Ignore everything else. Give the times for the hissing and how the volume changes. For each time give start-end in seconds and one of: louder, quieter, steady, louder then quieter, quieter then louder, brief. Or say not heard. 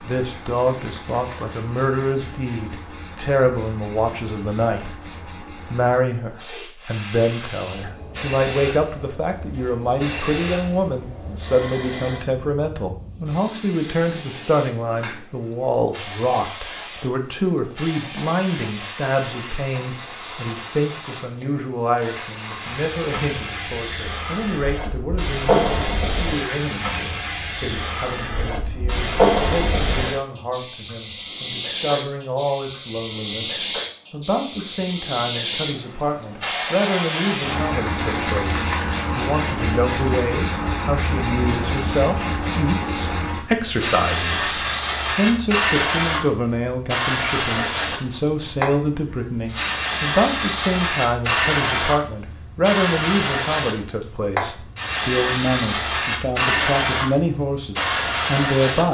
0.0-58.8 louder.